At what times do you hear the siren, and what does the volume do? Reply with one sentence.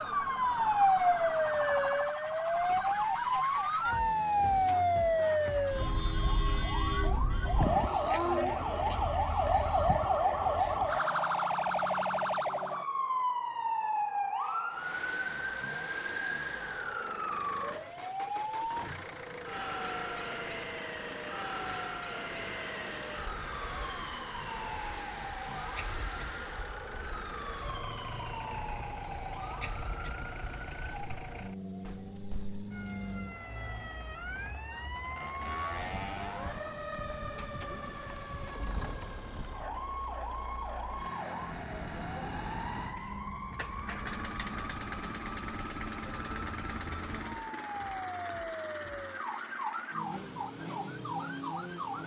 You can hear the siren from 0.0 to 52.0 s, getting quieter.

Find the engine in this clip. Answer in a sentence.
You can hear the engine from 0.0 to 6.6 s and from 14.7 to 52.0 s.